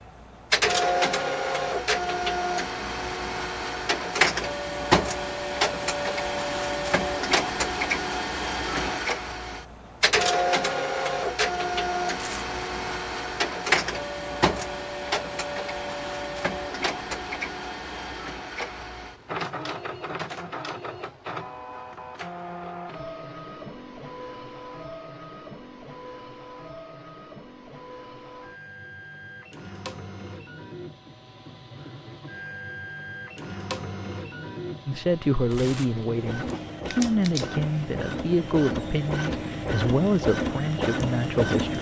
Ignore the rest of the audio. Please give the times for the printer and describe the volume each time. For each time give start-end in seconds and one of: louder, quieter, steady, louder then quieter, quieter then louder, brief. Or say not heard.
0.0-41.7 quieter then louder.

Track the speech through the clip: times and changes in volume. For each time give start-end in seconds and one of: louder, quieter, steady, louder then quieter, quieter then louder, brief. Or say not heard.
34.9-41.7 steady.